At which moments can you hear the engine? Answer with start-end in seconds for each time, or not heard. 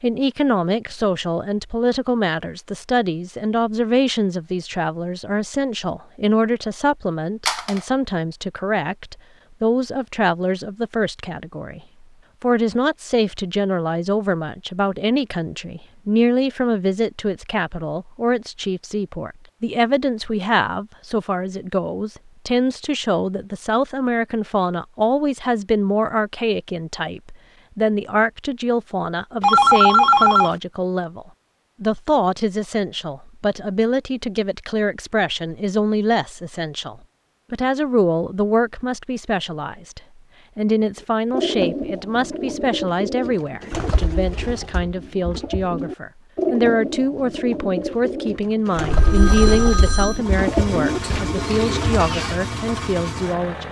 50.1-53.6.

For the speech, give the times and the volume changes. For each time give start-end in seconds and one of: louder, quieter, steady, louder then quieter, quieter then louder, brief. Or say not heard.
0.0-11.8 steady
12.4-53.6 steady.